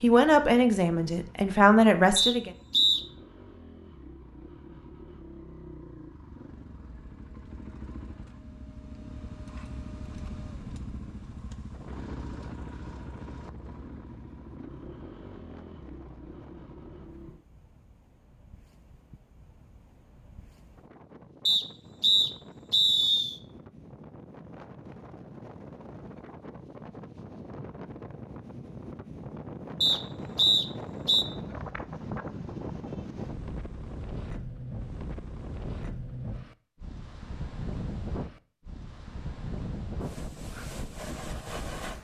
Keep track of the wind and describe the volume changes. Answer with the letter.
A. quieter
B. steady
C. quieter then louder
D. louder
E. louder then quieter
D.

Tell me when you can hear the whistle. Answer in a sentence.
The whistle can be heard from 2.1 to 3.0 s, from 21.4 to 23.4 s and from 29.8 to 31.2 s.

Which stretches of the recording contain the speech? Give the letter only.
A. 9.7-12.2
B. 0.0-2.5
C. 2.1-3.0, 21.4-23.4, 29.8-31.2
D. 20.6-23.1
B.